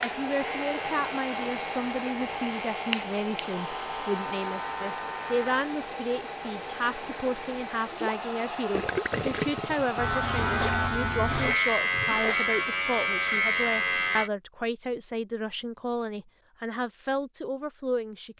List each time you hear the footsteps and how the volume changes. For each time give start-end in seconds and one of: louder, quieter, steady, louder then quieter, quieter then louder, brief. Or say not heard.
not heard.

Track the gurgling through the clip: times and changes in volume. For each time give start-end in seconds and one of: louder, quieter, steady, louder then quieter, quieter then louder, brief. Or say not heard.
7.9-12.4 quieter.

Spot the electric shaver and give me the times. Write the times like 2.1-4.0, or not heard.
0.0-5.7, 9.9-14.3.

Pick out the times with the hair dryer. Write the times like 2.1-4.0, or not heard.
0.0-10.9.